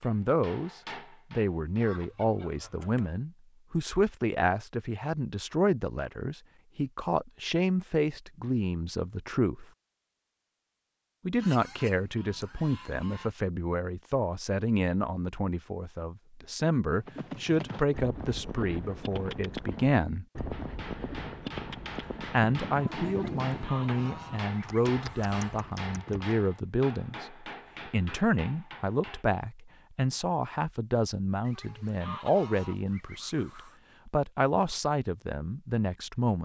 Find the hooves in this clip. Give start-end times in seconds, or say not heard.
16.9-26.4.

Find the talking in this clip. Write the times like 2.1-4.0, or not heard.
0.0-9.7, 11.2-20.2, 22.2-36.4.